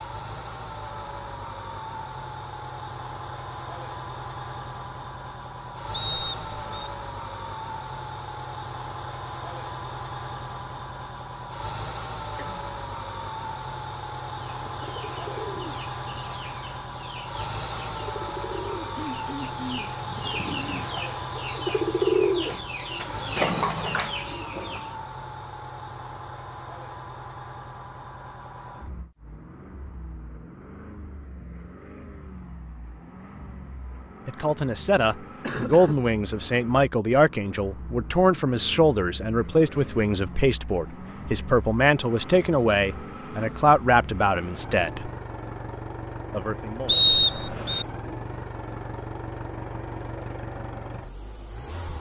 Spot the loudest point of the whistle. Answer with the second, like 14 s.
47 s.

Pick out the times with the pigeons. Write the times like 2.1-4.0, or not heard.
14.6-24.9.